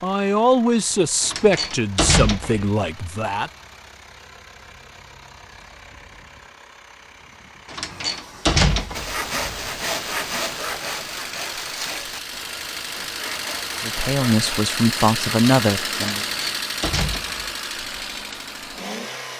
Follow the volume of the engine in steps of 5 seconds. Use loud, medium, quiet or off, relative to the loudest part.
quiet, quiet, loud, loud.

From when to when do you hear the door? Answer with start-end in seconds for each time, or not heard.
1.2-2.7, 7.7-9.2, 16.2-17.5.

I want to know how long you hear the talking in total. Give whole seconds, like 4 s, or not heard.
6 s.